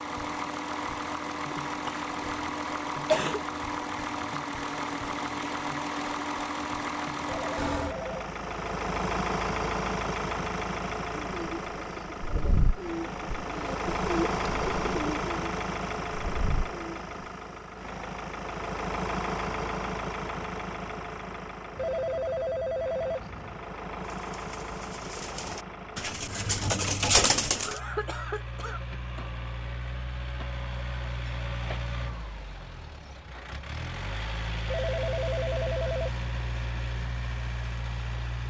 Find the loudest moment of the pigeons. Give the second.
27 s.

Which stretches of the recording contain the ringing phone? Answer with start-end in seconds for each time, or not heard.
7.2-8.1, 21.8-23.7, 34.6-36.2.